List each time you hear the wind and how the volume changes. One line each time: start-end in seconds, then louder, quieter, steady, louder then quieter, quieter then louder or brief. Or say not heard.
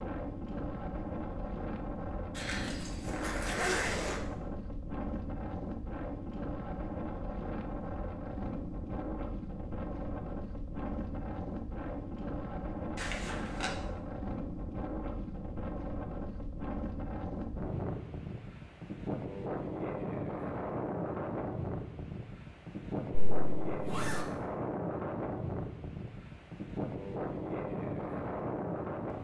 0.0-29.1 steady.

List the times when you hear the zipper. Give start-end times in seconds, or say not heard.
2.4-4.2, 12.9-13.7, 23.3-24.2.